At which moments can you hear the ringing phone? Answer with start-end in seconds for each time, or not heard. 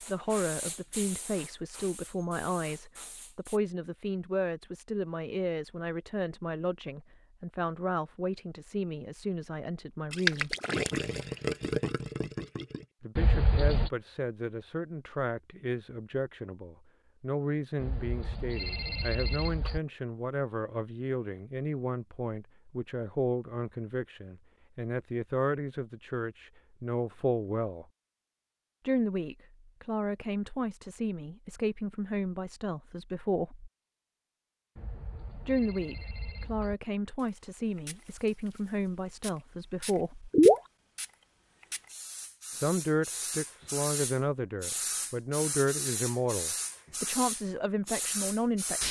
13.2-13.9, 17.8-19.8, 34.8-36.8.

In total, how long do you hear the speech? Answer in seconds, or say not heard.
41 s.